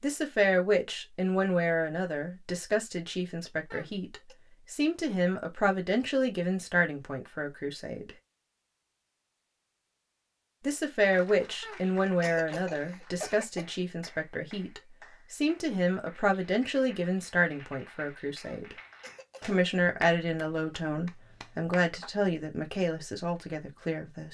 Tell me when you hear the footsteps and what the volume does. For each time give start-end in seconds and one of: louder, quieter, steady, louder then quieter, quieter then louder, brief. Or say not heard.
not heard.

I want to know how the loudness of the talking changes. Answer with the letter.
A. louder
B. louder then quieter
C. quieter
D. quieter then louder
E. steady
E.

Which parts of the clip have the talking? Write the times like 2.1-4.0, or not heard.
0.0-8.1, 10.7-18.8, 19.4-24.2.